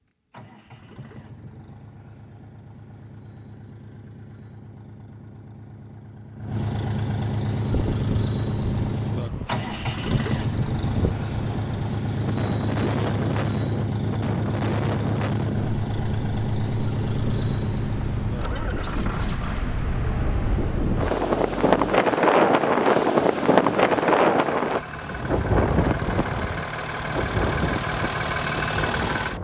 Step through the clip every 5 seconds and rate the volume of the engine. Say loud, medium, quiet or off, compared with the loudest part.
quiet, loud, loud, loud, medium, loud.